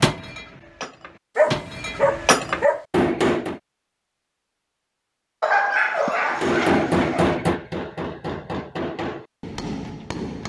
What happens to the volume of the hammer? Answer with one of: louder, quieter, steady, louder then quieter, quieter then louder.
louder then quieter.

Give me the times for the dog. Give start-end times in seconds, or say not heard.
1.4-2.9, 5.4-7.4.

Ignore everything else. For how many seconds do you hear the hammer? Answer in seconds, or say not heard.
8 s.